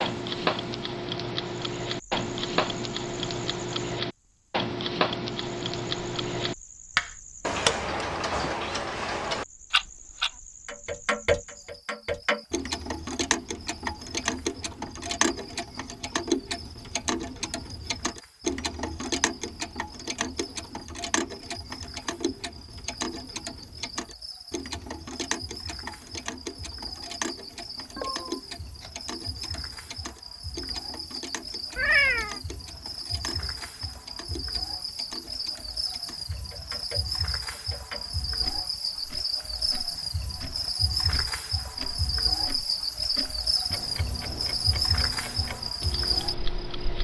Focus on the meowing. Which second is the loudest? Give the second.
32 s.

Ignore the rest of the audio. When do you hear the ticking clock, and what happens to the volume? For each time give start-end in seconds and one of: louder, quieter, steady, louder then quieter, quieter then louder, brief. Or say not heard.
0.0-46.9 quieter.